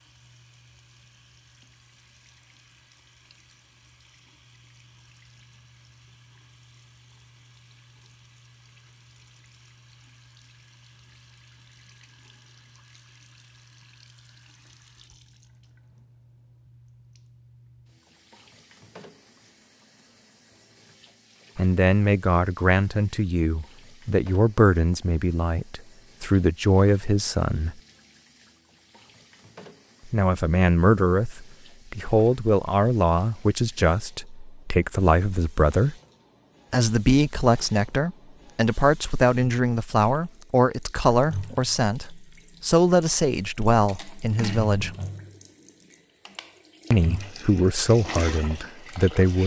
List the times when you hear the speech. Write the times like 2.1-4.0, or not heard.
21.6-27.8, 30.1-36.0, 36.7-45.0, 46.9-49.4.